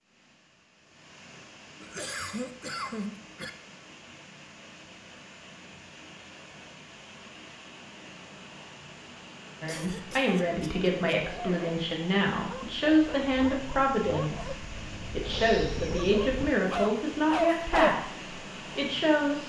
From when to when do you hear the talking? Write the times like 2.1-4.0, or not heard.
9.6-19.4.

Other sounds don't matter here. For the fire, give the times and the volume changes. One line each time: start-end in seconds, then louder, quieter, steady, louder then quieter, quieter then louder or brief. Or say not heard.
not heard.